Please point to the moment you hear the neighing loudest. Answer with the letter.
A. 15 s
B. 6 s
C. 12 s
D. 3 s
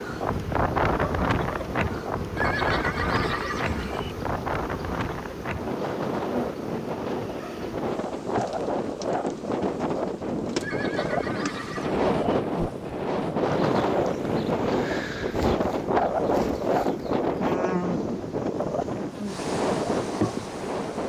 D.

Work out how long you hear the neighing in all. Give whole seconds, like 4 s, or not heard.
3 s.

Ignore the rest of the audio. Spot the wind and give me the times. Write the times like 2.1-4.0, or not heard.
0.0-21.0.